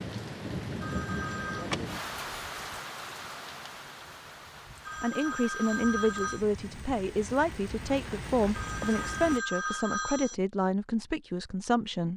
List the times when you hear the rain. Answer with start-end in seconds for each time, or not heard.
0.0-9.4.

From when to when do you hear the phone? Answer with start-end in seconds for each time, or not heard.
0.8-1.7, 4.8-6.5, 8.5-10.3.